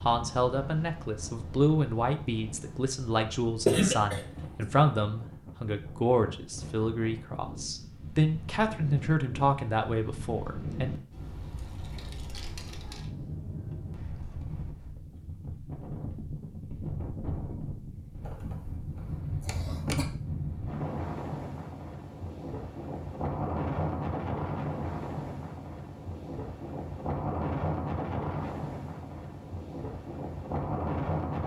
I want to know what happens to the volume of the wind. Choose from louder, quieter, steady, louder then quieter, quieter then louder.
louder.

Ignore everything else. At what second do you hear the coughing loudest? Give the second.
4 s.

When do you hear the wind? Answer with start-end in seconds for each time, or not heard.
0.0-31.4.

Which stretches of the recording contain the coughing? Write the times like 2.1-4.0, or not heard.
3.6-4.7, 18.2-20.1.